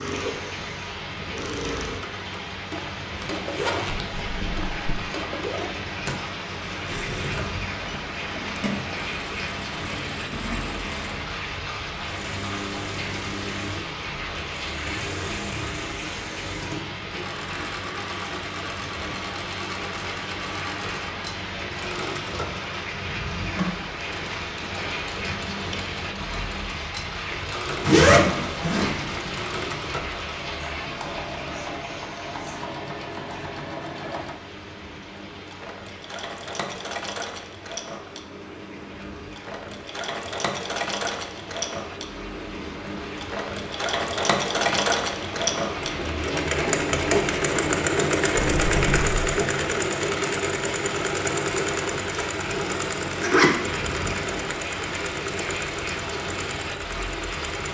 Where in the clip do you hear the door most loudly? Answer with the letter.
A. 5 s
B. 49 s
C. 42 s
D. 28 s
B.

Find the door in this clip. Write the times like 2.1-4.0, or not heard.
3.9-5.0, 48.4-49.2.